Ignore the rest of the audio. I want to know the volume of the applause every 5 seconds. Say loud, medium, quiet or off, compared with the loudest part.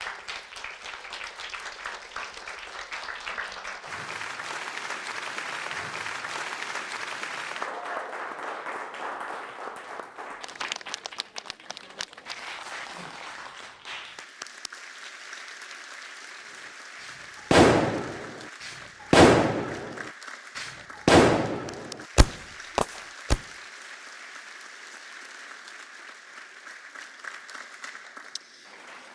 loud, loud, medium, medium, medium, medium.